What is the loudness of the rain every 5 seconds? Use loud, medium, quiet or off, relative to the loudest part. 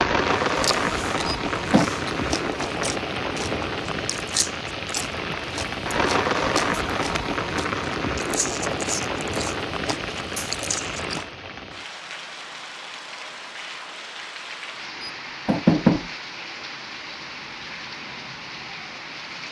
loud, loud, medium, medium.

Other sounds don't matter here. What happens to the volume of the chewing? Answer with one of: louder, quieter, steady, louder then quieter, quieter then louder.
steady.